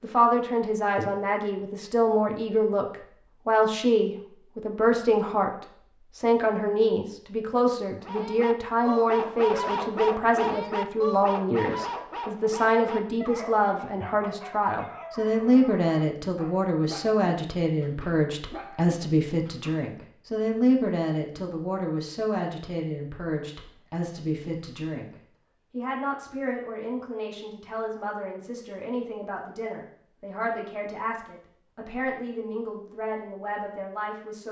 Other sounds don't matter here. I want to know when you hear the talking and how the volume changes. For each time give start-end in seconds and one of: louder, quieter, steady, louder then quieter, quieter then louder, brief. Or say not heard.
0.0-34.4 quieter.